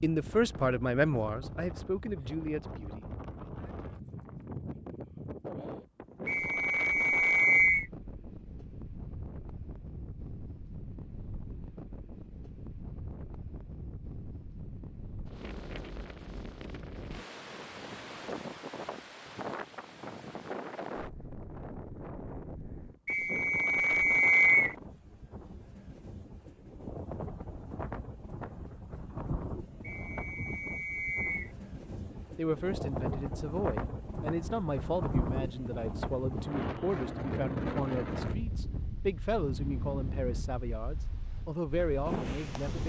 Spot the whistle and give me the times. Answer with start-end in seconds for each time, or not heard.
6.2-7.8, 23.1-24.8, 29.8-31.5.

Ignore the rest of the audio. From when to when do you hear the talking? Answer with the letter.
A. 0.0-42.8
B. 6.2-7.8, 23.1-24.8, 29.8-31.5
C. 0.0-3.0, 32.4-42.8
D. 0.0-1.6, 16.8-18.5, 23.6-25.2
C.